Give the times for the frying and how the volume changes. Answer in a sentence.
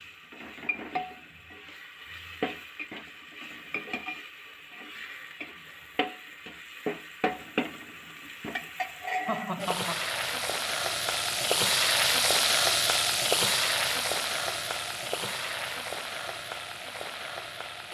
The frying can be heard from 0.0 to 17.8 s, getting louder then quieter.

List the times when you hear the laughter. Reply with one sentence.
The laughter can be heard from 9.2 to 10.0 s.